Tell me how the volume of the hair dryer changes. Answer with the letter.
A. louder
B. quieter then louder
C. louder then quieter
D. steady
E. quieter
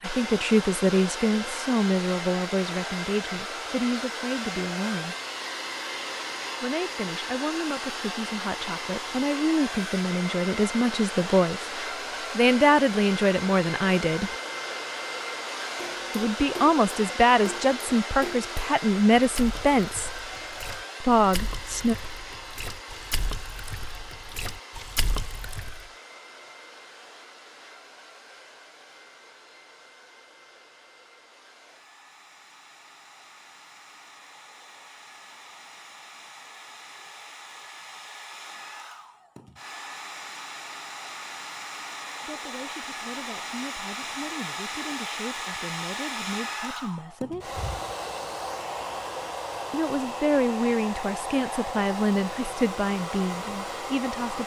B.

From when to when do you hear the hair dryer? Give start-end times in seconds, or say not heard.
0.0-54.4.